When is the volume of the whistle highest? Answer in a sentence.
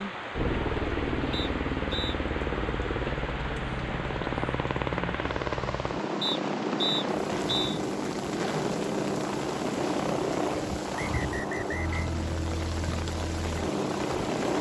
The volume of the whistle peaks at 7 seconds.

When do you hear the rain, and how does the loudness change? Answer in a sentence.
The rain can be heard from 0.0 to 14.5 s, at a steady volume.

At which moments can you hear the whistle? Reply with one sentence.
You can hear the whistle from 1.3 to 2.1 s, from 6.2 to 7.8 s and from 10.9 to 12.1 s.